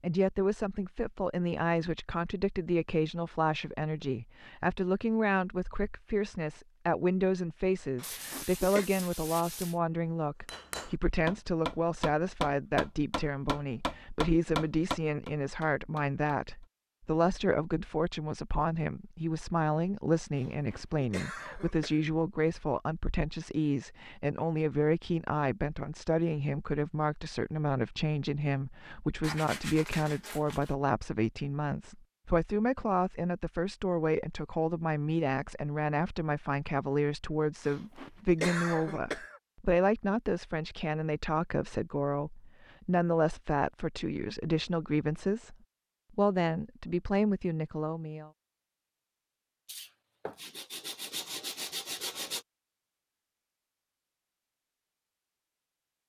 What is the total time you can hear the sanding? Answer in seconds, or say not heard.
6 s.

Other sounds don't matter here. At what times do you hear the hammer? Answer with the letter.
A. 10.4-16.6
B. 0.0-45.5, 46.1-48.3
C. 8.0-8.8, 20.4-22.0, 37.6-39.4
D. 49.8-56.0
A.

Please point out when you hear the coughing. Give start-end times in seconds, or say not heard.
8.0-8.8, 20.4-22.0, 37.6-39.4.